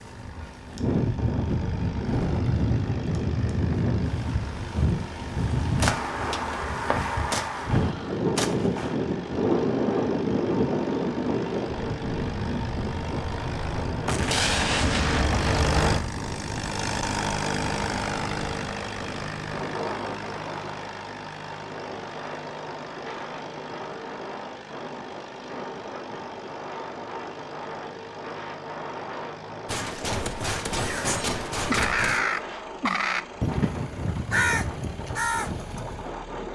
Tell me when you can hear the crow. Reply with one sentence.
You can hear the crow from 30.8 to 36.0 s.